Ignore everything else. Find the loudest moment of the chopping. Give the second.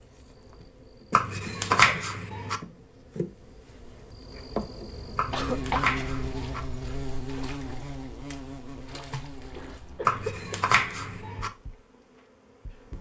2 s.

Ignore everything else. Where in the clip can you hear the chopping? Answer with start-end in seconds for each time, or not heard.
1.1-2.6, 5.2-6.6, 10.1-11.5.